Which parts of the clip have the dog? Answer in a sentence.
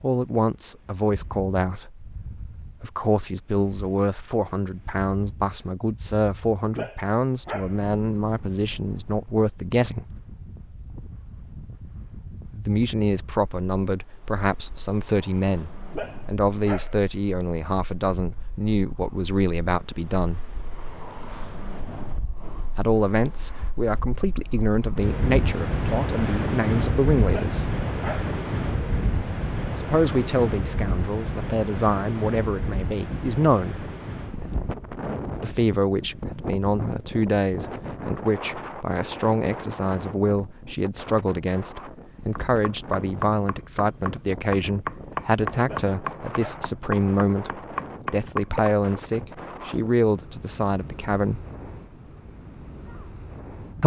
You can hear the dog from 6.7 to 7.8 s, from 15.8 to 17.0 s, from 27.2 to 28.4 s and from 45.5 to 46.7 s.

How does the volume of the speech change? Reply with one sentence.
The volume of the speech stays about the same.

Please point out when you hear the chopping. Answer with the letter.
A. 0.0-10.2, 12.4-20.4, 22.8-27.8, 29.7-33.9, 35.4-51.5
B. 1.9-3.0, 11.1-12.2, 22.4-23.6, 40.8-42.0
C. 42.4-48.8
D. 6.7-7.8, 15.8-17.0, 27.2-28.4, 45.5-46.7
C.